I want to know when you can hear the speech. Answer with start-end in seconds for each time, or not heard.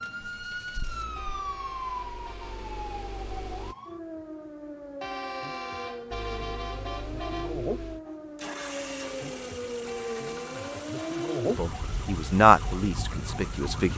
11.4-13.9.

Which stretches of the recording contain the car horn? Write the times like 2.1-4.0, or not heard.
1.1-2.6, 5.0-7.7, 9.8-11.4.